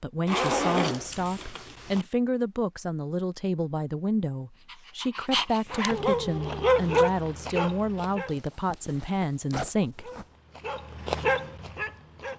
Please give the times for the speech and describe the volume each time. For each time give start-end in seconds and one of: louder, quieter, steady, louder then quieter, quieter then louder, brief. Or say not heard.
0.0-10.1 steady.